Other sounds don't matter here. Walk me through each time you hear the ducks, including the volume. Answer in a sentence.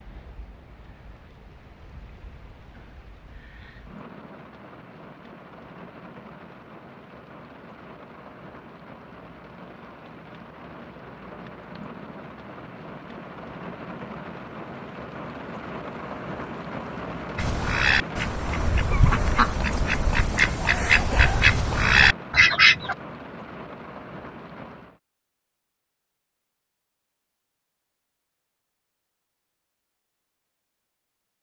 You can hear the ducks from 17.4 to 22.9 s, getting louder.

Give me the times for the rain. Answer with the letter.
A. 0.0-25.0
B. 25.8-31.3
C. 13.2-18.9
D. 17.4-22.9
A.